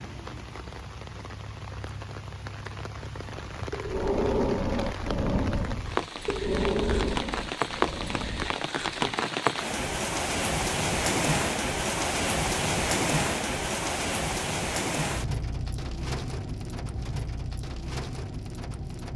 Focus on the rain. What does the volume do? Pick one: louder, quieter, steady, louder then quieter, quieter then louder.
louder then quieter.